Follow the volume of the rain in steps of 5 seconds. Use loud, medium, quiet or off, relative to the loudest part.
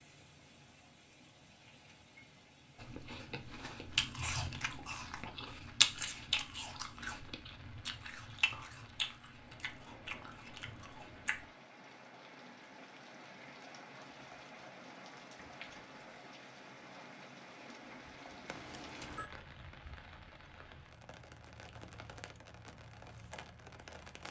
medium, medium, loud, loud, loud.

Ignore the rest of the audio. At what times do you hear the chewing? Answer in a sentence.
The chewing can be heard from 2.8 to 11.4 s.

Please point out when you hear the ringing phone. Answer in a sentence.
The ringing phone can be heard from 18.4 to 19.3 s.